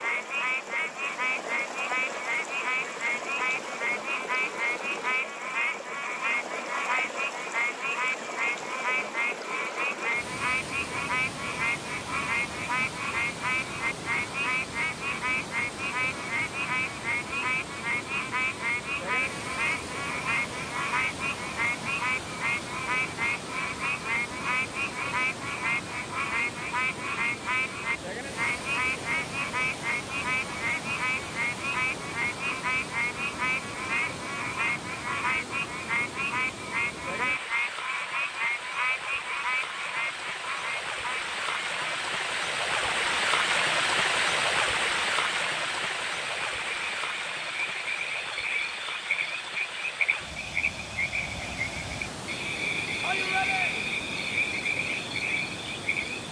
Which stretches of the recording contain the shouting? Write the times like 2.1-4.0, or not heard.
53.0-53.8.